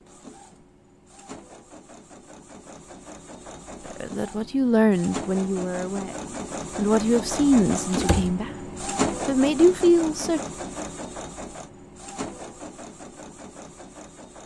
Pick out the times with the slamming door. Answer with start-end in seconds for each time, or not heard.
7.9-8.3.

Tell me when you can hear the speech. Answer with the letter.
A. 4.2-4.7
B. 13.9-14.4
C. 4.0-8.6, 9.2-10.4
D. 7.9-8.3
C.